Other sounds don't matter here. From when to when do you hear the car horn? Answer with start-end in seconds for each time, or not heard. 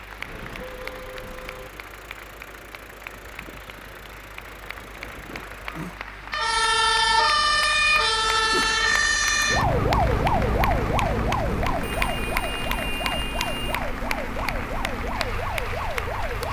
0.1-1.7, 11.5-13.8.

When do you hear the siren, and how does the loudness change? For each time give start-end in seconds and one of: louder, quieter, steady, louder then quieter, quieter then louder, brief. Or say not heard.
5.7-16.4 quieter.